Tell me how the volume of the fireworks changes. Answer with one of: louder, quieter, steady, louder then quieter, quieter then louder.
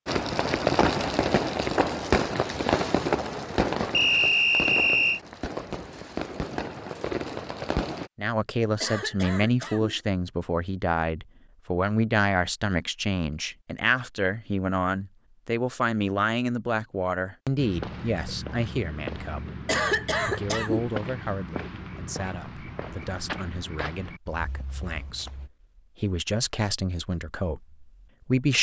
quieter.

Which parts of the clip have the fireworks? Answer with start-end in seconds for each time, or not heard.
0.1-8.1.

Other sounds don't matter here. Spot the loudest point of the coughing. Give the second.
20 s.